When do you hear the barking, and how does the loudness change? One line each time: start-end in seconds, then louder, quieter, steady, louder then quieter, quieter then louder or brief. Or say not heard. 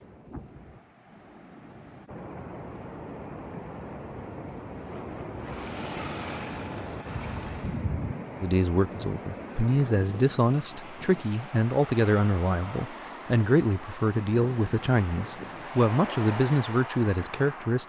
not heard.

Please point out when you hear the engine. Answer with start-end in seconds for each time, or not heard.
5.4-7.8.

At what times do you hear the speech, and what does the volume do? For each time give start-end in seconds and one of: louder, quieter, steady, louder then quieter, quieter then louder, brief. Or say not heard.
8.4-17.8 steady.